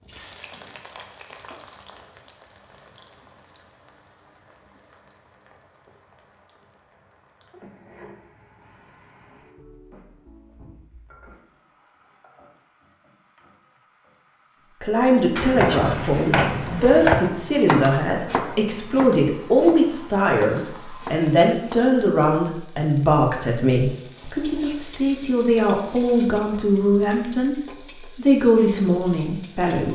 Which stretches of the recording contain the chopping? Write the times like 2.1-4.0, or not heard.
15.2-21.9.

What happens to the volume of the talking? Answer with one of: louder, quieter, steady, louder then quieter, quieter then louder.
steady.